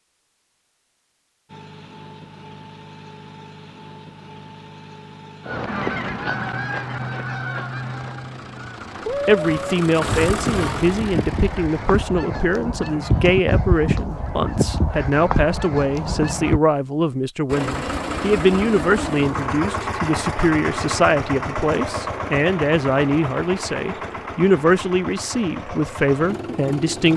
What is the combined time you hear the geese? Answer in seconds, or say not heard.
11 s.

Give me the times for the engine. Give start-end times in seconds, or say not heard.
1.4-12.1, 17.4-27.1.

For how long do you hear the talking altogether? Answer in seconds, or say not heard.
18 s.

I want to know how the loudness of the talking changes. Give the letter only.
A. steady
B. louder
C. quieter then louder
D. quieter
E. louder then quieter
A.